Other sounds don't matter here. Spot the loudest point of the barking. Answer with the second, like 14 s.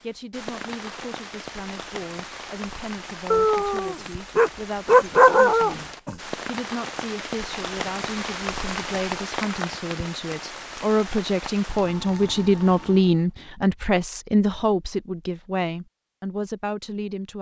5 s.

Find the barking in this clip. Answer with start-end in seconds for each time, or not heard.
3.3-6.2.